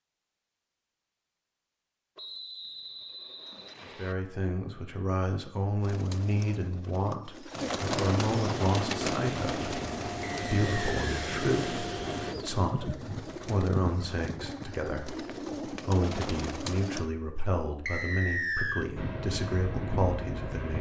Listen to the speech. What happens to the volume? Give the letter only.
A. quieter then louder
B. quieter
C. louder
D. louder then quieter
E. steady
E.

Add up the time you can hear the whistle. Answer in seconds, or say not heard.
4 s.